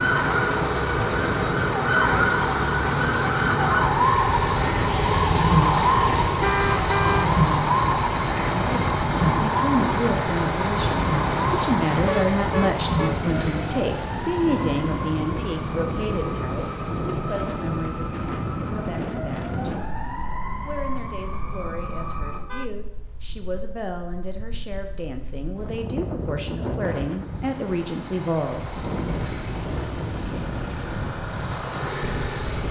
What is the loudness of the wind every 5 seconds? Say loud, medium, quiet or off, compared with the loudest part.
loud, loud, loud, loud, quiet, loud, loud.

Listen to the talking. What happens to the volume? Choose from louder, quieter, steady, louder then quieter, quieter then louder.
quieter then louder.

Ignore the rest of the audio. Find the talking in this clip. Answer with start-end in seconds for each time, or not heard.
8.3-28.8.